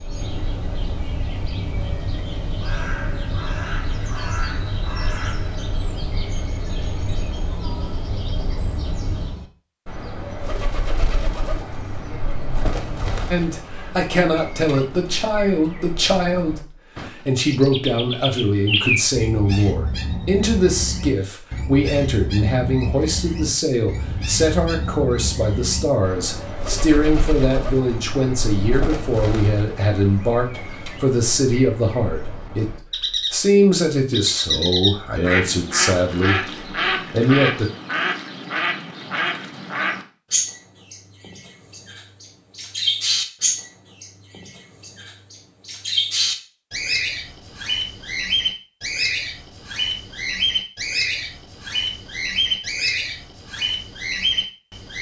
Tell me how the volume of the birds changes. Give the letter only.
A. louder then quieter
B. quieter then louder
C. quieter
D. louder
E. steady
D.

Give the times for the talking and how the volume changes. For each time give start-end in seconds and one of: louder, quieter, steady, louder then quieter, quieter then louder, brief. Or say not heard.
13.3-36.5 steady
37.1-37.7 brief.